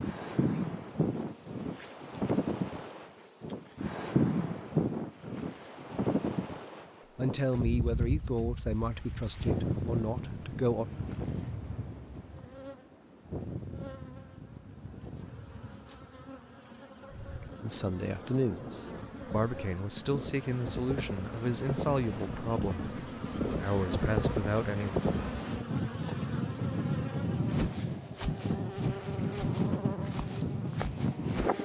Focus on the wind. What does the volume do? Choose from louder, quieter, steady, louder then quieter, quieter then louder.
quieter then louder.